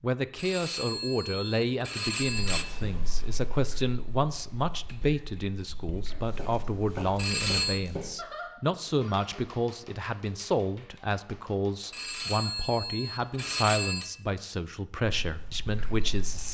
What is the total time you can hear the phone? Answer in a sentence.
The phone can be heard for 5 seconds in total.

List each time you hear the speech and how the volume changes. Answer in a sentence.
The speech can be heard from 0.0 to 16.4 s, at a steady volume.